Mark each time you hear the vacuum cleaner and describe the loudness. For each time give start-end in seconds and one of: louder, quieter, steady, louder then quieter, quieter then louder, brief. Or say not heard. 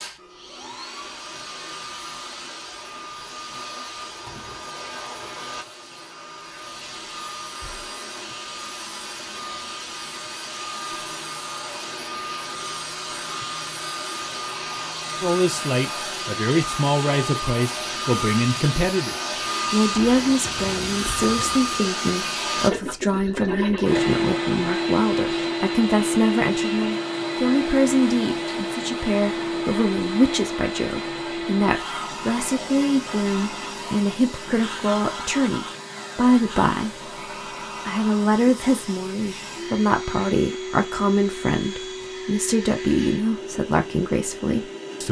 0.0-45.0 louder then quieter.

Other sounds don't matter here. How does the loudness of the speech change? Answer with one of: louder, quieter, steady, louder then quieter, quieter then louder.
steady.